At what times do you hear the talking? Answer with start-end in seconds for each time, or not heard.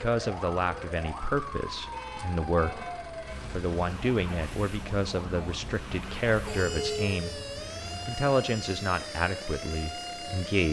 0.0-7.4, 8.1-10.6.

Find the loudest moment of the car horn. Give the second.
7 s.